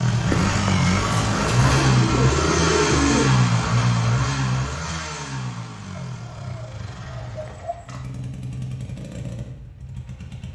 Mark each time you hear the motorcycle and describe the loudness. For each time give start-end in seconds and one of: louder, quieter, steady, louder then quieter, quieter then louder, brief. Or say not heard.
0.0-10.5 quieter.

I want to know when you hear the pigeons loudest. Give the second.
3 s.